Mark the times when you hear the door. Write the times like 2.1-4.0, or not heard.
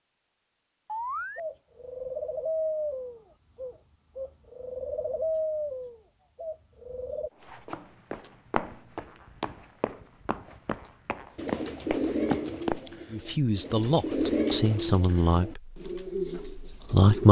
not heard.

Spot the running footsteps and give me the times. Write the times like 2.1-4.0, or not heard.
7.4-12.9.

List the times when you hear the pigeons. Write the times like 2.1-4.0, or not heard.
0.8-7.3, 11.3-17.2.